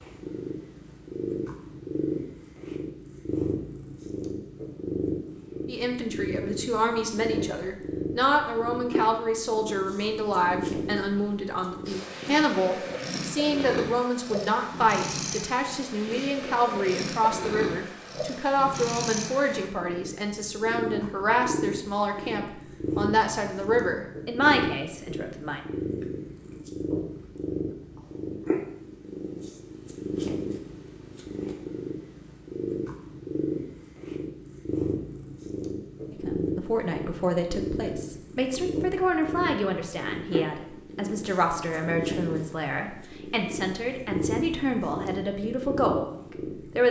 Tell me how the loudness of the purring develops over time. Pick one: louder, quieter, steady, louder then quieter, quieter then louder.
steady.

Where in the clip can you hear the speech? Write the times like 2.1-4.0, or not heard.
5.7-25.6, 36.1-46.8.